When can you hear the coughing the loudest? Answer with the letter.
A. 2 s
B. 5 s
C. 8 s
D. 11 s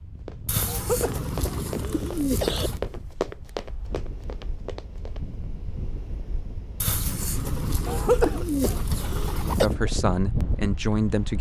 C.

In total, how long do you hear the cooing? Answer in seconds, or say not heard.
5 s.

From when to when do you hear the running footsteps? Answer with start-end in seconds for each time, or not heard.
0.2-5.3.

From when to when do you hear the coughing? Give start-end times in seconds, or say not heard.
0.7-2.7, 7.8-9.7.